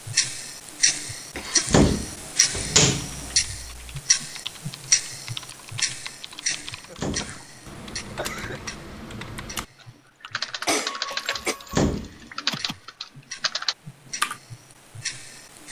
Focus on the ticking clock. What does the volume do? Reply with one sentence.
The volume of the ticking clock goes down, then up.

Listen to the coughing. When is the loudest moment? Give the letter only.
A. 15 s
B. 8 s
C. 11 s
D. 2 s
C.